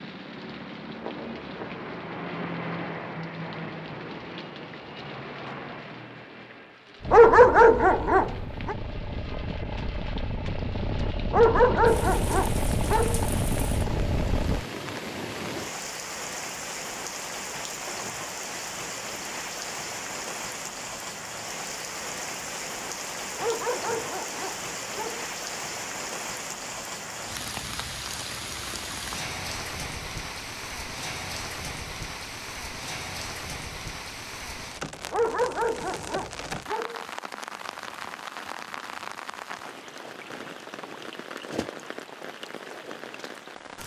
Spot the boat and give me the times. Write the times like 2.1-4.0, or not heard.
7.0-14.7.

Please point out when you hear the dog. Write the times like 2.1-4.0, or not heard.
7.1-8.8, 11.3-13.2, 23.4-25.3, 35.1-37.0.